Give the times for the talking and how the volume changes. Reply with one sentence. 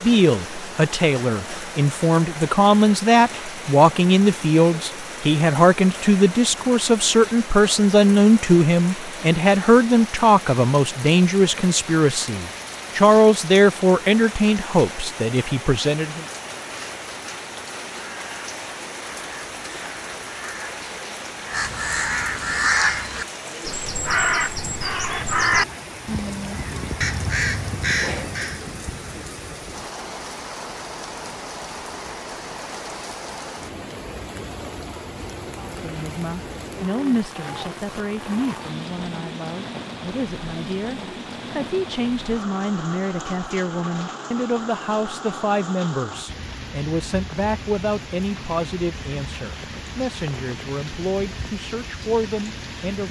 The talking can be heard from 0.0 to 16.2 s, at a steady volume; and from 35.5 to 53.0 s, at a steady volume.